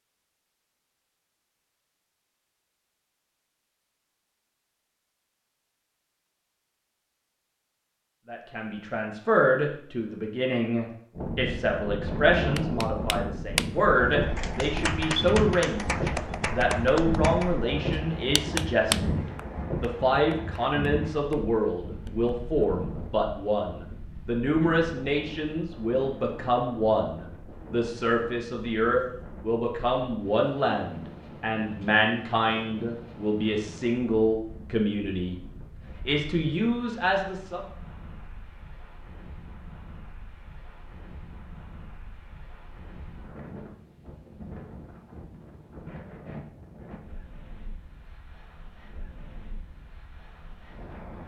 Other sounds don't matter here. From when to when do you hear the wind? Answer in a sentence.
You can hear the wind from 11.1 to 51.2 s.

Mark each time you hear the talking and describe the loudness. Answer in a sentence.
The talking can be heard from 8.2 to 35.4 s, at a steady volume; and briefly from 36.0 to 37.6 s.